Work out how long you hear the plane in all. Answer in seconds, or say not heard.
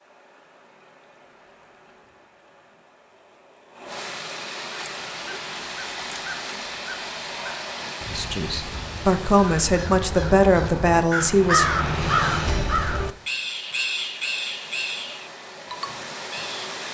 not heard.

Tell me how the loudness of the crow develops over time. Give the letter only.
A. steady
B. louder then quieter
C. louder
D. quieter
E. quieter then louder
B.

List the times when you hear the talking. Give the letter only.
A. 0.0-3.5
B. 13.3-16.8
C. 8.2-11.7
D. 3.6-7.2
C.